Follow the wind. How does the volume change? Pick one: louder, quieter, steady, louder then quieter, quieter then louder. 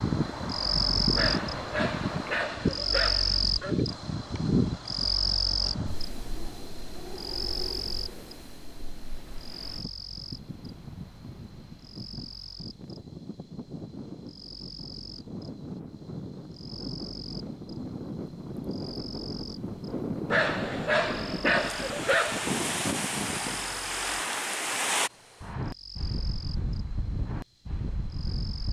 quieter then louder.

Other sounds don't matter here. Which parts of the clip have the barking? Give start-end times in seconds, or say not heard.
1.1-3.9, 20.3-22.5.